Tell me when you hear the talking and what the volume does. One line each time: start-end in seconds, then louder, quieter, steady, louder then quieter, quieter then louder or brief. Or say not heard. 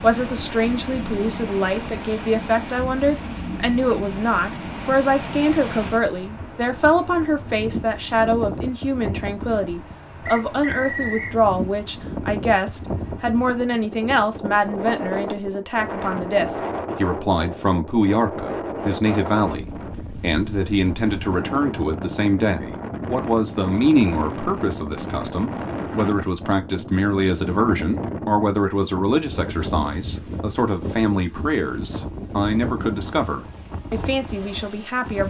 0.0-35.2 steady.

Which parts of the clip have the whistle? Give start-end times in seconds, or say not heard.
10.2-11.3.